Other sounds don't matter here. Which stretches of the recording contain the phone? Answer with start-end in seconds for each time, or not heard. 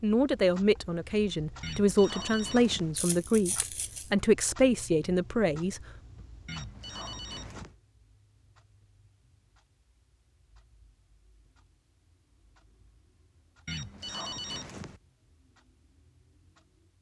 1.6-3.0, 6.5-7.8, 13.7-15.0.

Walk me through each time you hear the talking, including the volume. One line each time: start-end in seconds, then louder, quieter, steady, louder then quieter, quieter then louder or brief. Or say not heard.
0.0-5.8 steady.